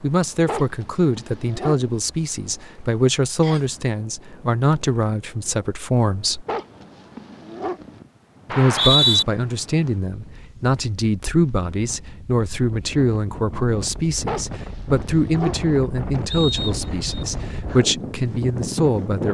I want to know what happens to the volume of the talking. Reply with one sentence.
The volume of the talking stays about the same.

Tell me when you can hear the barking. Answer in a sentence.
The barking can be heard from 0.5 to 2.0 s, from 6.5 to 8.0 s and from 14.2 to 15.7 s.